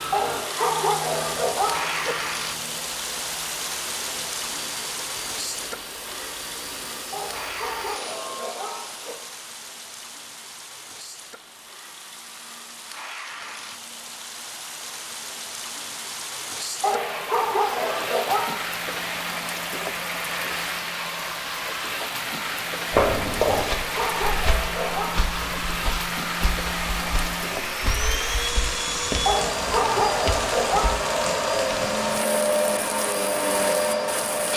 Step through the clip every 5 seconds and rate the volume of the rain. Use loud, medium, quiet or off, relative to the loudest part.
loud, medium, medium, loud, loud, loud, loud.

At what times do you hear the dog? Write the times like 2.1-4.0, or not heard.
0.1-2.1, 7.1-9.2, 16.8-18.6, 23.4-25.4, 29.2-31.1.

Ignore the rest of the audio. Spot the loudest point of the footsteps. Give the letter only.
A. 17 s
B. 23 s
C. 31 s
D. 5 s
B.